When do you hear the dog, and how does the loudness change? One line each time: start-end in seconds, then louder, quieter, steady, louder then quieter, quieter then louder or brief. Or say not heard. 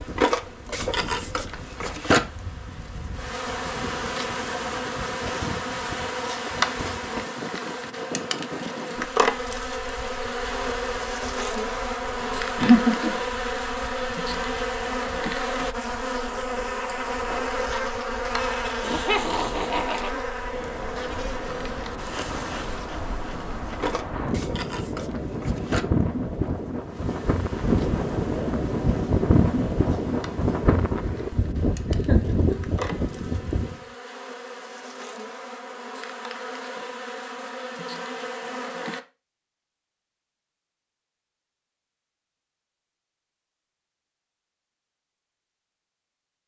not heard.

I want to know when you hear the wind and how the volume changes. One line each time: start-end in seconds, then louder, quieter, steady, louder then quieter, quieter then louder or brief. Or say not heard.
0.0-33.9 quieter then louder.